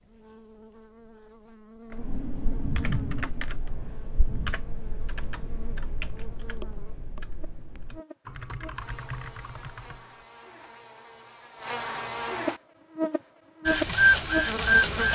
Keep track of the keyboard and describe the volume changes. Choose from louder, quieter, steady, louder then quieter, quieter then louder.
quieter then louder.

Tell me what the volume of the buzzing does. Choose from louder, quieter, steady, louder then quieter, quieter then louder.
louder.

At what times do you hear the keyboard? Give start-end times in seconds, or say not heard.
1.9-10.2.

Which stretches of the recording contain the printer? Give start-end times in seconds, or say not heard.
13.7-15.1.